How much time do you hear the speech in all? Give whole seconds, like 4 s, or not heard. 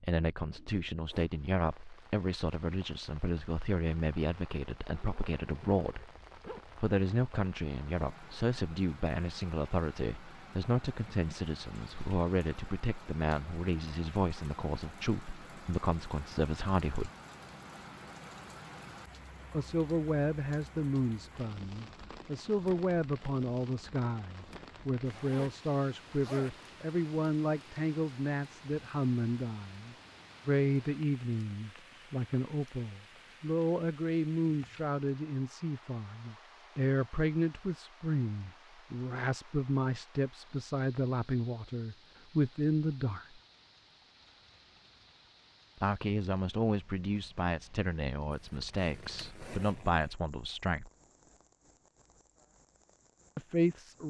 46 s.